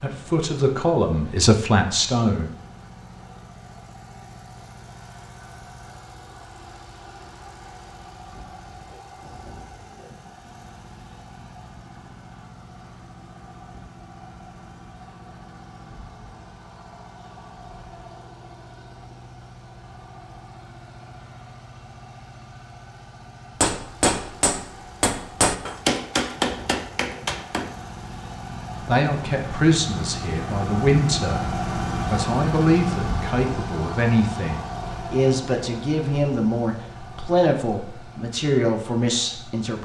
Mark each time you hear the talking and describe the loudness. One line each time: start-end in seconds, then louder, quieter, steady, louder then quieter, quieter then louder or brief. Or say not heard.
0.0-2.5 brief
28.9-39.7 steady.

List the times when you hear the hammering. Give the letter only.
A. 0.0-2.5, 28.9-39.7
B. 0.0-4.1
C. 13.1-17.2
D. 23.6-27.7
D.